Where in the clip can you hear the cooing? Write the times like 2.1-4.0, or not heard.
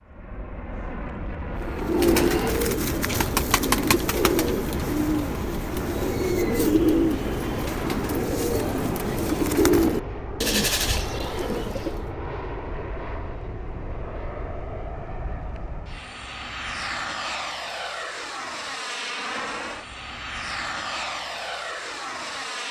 1.6-12.2.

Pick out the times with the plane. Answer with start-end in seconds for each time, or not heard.
0.0-22.6.